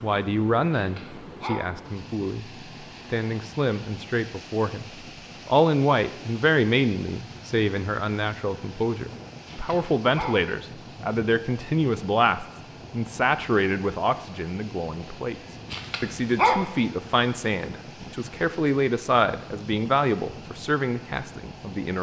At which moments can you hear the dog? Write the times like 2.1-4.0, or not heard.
0.7-1.6, 9.4-10.4, 15.7-16.6.